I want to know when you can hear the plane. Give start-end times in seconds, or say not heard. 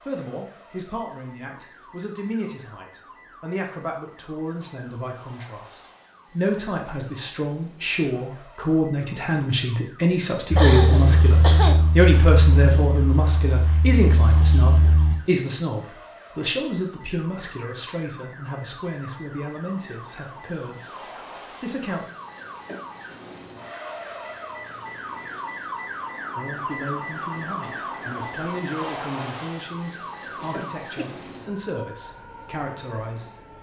10.5-15.2.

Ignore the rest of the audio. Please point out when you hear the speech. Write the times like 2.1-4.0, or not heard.
0.0-22.1, 26.4-33.3.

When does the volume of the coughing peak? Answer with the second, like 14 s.
11 s.